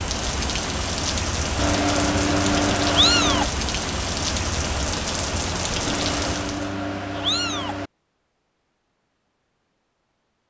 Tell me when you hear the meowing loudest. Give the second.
3 s.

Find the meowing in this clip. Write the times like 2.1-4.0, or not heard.
1.6-3.5, 5.8-7.9.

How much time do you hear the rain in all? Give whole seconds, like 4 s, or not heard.
7 s.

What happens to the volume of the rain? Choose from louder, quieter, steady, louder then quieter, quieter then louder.
steady.